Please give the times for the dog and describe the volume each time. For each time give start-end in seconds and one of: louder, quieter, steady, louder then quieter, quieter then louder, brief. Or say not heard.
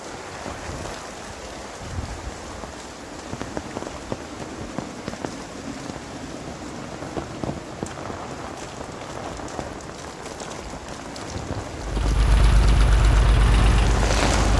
not heard.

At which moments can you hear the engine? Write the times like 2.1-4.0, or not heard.
11.8-14.5.